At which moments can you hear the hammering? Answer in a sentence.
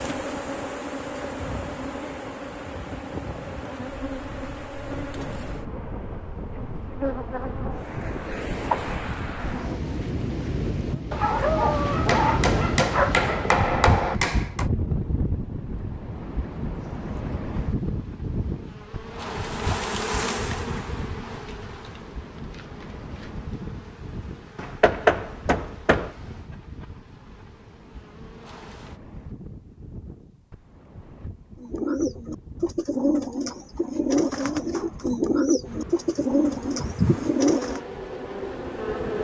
You can hear the hammering from 12.1 to 14.7 s and from 24.6 to 26.1 s.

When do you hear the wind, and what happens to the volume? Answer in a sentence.
The wind can be heard from 0.0 to 39.1 s, getting louder then quieter.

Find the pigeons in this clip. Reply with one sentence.
You can hear the pigeons from 31.6 to 37.8 s.